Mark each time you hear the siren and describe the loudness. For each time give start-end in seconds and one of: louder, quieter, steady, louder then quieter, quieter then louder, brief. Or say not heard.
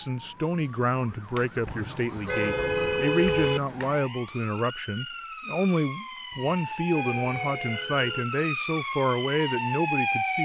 0.0-10.4 louder.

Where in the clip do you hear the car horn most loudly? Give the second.
3 s.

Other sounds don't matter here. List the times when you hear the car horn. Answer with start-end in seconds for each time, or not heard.
1.6-3.6, 6.3-8.2.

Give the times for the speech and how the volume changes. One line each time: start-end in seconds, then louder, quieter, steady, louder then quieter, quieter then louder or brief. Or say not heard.
0.0-10.4 steady.